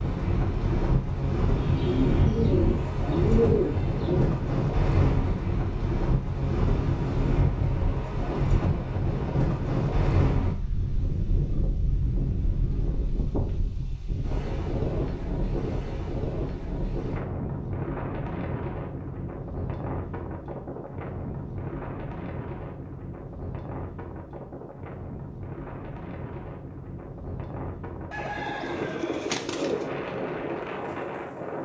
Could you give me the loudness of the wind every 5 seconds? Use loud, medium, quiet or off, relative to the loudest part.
loud, loud, loud, medium, medium, medium, medium.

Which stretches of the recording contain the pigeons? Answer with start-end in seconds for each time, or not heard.
1.6-4.3, 28.1-29.9.